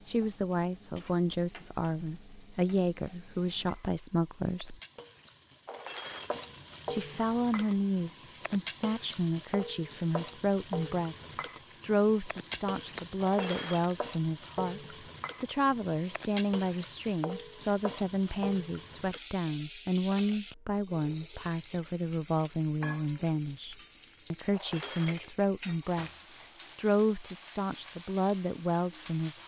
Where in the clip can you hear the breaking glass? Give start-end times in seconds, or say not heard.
5.7-6.5, 13.2-14.2, 24.5-25.4.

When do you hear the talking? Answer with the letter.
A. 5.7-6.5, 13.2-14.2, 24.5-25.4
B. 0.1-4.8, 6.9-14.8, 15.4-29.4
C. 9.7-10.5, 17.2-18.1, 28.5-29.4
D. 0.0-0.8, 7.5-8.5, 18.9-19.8
B.